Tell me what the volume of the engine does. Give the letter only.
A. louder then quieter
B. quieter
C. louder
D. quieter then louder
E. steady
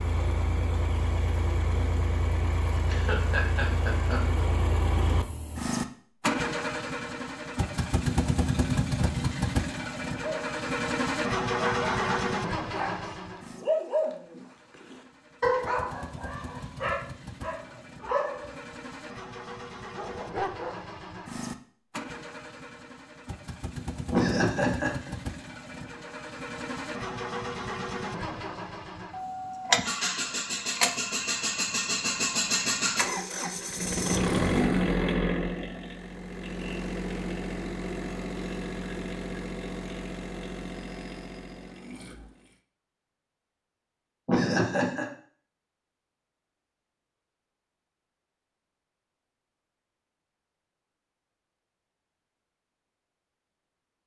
D.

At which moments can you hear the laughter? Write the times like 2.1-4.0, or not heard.
2.9-4.4, 24.1-25.1, 44.2-45.0.